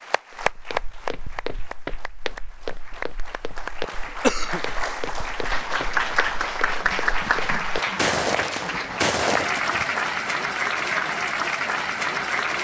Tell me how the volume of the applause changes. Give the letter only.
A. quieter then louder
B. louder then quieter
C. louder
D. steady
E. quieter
C.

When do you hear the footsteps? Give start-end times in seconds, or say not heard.
0.3-9.9.